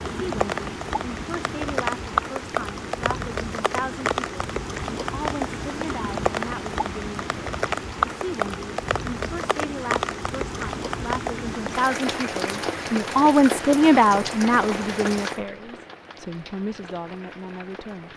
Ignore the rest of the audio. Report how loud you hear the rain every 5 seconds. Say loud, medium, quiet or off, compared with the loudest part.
loud, loud, loud, medium.